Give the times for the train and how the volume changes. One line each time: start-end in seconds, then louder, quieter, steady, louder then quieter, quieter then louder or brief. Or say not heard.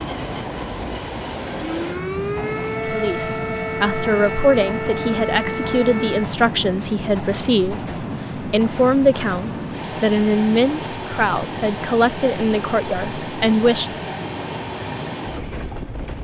0.0-16.1 steady.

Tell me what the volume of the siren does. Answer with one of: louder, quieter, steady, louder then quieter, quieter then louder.
steady.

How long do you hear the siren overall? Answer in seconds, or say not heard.
5 s.